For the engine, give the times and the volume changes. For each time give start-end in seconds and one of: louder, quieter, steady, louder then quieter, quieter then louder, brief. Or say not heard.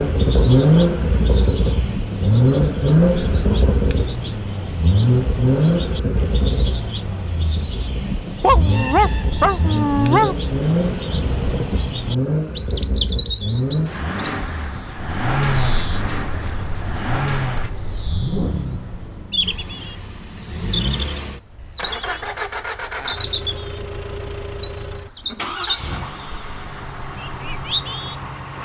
0.0-28.6 quieter.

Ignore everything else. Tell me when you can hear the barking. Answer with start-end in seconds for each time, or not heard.
8.4-10.3.